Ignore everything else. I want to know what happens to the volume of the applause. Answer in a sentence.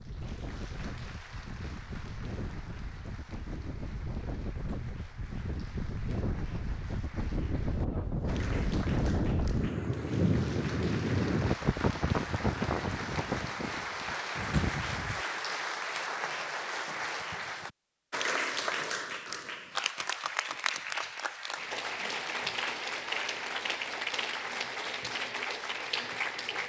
The volume of the applause goes up.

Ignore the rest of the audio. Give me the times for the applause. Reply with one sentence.
You can hear the applause from 0.0 to 26.6 s.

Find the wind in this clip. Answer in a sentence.
You can hear the wind from 0.0 to 15.2 s.